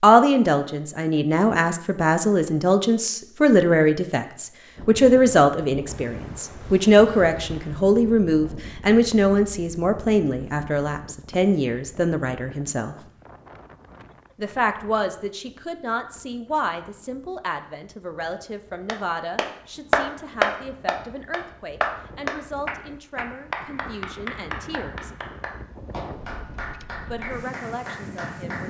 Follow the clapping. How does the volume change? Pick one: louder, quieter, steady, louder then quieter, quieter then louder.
quieter.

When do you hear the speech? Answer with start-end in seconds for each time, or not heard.
0.0-12.9, 14.3-25.1, 27.1-28.6.